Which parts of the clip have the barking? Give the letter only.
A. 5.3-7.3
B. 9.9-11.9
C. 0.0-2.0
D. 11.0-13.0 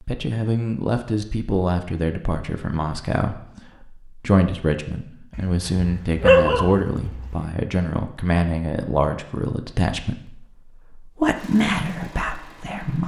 A.